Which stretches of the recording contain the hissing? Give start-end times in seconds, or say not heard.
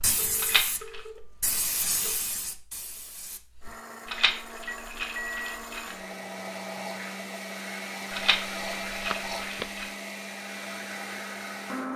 0.0-3.8.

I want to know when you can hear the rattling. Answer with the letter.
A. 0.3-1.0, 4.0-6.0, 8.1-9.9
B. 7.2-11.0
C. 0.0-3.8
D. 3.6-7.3
A.